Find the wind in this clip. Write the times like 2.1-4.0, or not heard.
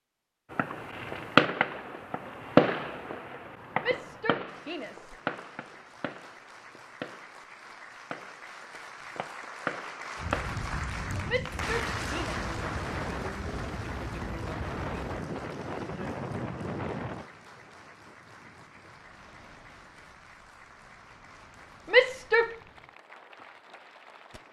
10.2-24.4.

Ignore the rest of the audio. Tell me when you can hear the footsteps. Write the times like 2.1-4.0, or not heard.
not heard.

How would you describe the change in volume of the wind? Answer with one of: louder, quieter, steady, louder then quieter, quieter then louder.
quieter.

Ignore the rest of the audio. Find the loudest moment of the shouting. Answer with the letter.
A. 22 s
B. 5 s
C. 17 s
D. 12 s
A.